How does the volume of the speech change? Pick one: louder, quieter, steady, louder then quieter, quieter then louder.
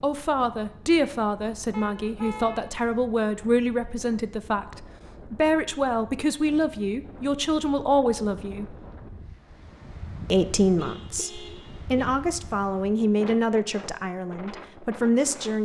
steady.